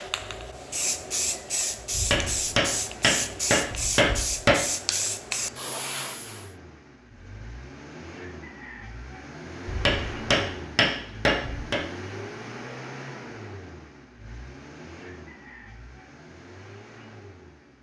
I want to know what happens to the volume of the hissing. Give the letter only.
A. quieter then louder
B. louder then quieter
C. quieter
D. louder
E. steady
E.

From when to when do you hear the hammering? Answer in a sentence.
You can hear the hammering from 1.9 to 4.6 s and from 9.7 to 11.8 s.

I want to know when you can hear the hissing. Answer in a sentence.
The hissing can be heard from 0.0 to 6.5 s.